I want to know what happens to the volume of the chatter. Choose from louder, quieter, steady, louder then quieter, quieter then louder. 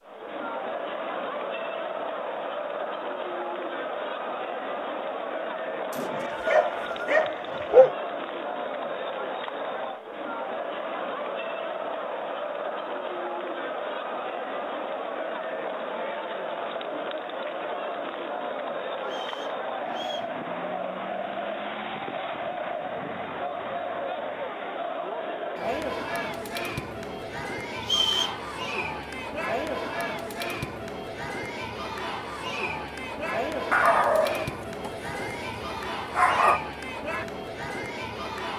steady.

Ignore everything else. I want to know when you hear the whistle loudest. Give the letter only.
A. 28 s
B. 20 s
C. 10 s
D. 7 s
A.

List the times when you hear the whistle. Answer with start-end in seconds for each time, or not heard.
5.9-7.2, 19.1-20.3, 27.8-28.4.